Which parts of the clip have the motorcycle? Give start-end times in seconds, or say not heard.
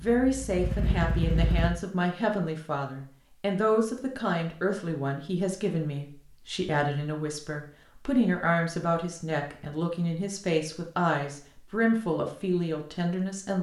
0.0-1.7.